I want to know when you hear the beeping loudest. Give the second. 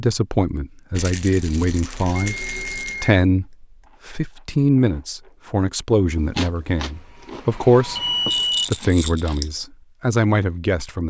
8 s.